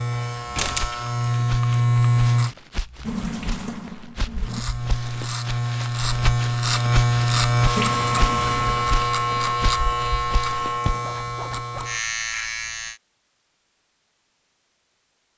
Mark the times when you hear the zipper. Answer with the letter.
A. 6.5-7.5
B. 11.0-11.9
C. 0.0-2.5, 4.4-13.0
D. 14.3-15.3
B.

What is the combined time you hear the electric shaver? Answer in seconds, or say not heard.
11 s.